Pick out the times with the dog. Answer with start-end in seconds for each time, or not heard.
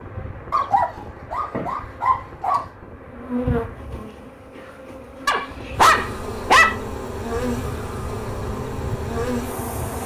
0.5-2.6, 5.2-6.8.